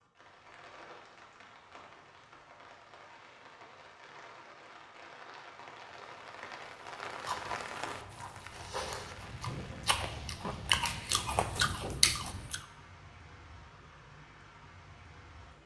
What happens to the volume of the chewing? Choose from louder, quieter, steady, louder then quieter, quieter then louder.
louder.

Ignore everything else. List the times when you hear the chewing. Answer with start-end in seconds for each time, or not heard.
7.2-12.6.